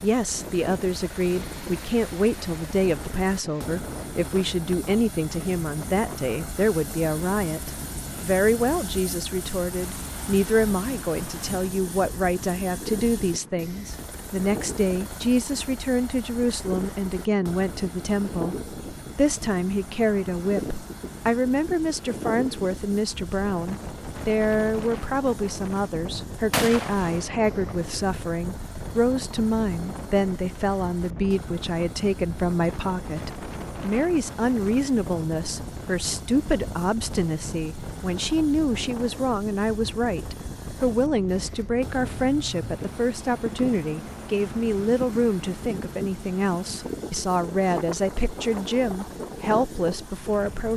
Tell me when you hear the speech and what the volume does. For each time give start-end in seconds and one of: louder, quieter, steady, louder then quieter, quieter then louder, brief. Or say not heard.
0.0-50.7 steady.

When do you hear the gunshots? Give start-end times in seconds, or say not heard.
26.5-28.1.